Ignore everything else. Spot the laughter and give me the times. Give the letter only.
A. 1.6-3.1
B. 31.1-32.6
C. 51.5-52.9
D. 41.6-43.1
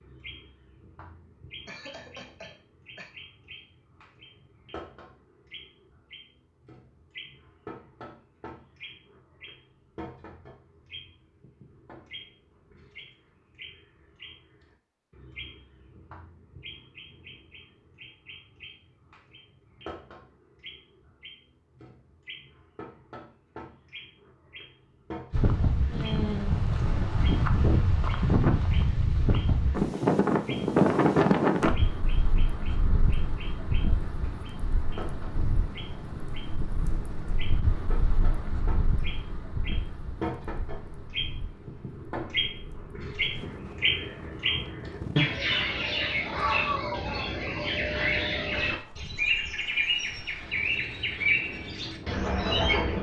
A.